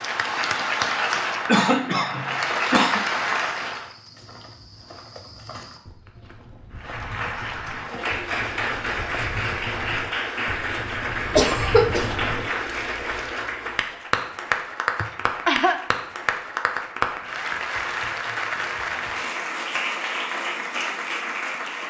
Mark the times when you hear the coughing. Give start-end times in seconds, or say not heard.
1.4-3.0, 11.3-12.2, 15.0-15.8.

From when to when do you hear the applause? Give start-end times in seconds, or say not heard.
0.0-3.9, 6.8-21.8.